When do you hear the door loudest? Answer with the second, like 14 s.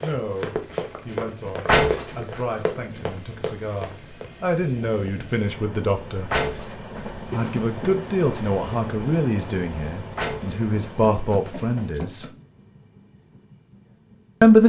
2 s.